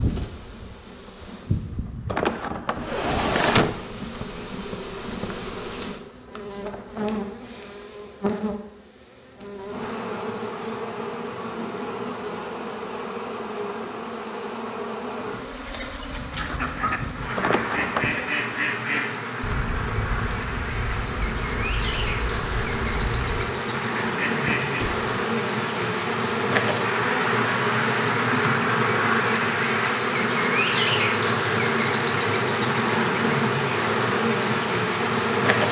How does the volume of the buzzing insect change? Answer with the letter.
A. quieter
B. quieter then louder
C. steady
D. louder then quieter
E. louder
E.